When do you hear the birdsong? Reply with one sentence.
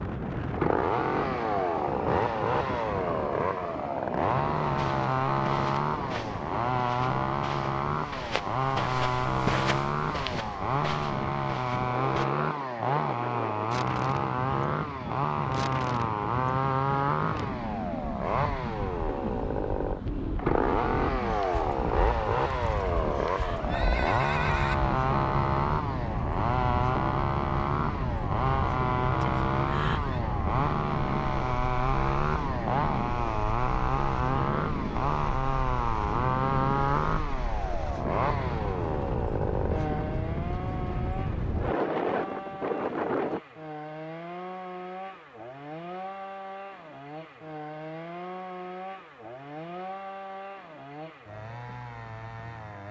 You can't hear the birdsong here.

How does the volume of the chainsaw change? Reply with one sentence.
The loudness of the chainsaw goes down.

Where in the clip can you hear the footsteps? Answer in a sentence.
The footsteps can be heard from 4.6 to 12.2 s.